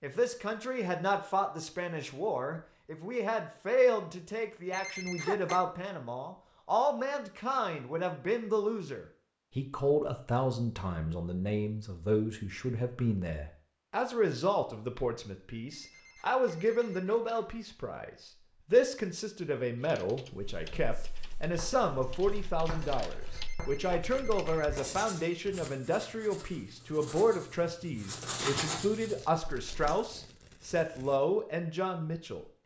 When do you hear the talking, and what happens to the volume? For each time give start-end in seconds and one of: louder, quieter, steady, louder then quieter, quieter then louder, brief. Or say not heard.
0.0-32.5 steady.